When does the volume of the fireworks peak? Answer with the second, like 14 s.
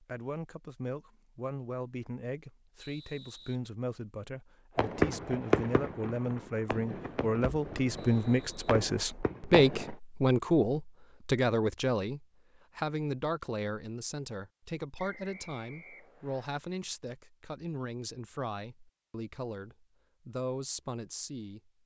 5 s.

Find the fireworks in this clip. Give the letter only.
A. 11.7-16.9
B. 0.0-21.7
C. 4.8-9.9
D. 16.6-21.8
C.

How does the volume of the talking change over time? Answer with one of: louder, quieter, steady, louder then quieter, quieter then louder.
louder then quieter.